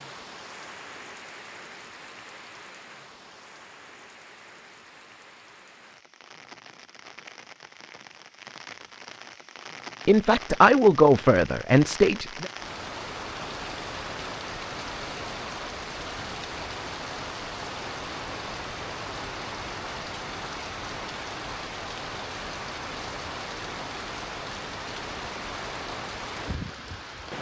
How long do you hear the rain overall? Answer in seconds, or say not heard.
27 s.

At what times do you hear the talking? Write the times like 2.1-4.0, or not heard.
10.1-12.5.